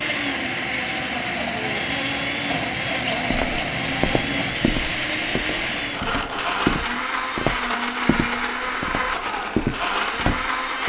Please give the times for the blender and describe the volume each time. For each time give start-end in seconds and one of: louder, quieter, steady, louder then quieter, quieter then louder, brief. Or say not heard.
0.0-10.8 steady.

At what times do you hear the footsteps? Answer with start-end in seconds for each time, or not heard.
3.3-10.8.